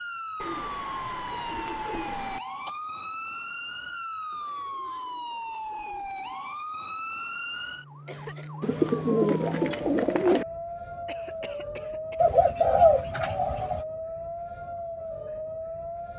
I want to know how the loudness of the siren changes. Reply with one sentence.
The loudness of the siren stays about the same.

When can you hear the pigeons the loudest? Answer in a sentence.
The volume of the pigeons peaks at 13 seconds.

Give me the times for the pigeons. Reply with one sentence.
The pigeons can be heard from 0.4 to 2.4 s, from 4.3 to 6.3 s, from 8.6 to 10.4 s and from 12.2 to 13.8 s.